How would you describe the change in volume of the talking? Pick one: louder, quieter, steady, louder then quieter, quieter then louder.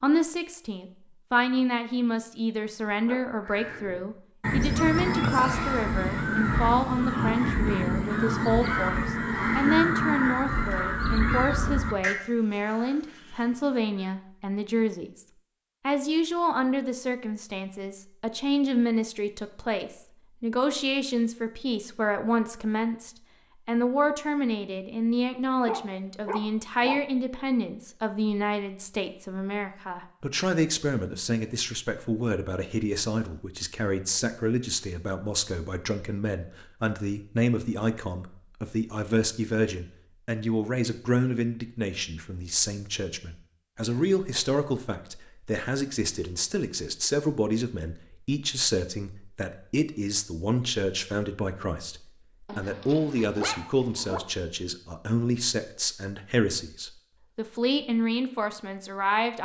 steady.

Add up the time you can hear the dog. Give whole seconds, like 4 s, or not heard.
3 s.